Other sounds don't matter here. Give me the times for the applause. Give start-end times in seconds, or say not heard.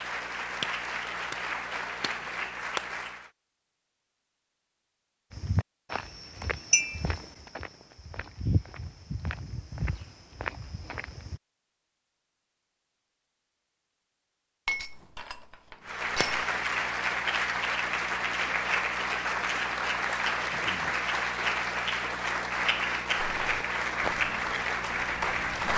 0.0-3.3, 15.8-25.7.